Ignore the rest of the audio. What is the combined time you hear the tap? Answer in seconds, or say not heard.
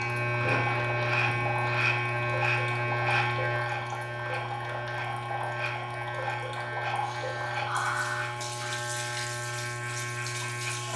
11 s.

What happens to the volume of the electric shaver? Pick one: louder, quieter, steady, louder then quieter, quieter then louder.
quieter.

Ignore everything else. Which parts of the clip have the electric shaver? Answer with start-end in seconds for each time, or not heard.
0.0-10.9.